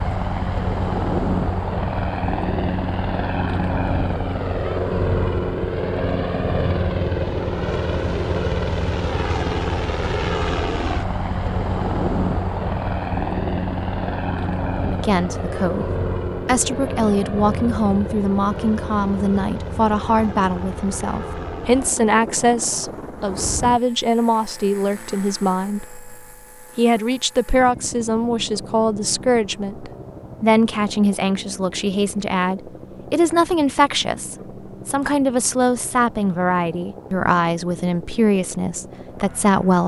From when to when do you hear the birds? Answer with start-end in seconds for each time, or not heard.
not heard.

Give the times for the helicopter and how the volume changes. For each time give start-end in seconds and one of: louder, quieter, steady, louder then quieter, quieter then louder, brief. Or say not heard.
0.0-39.8 quieter.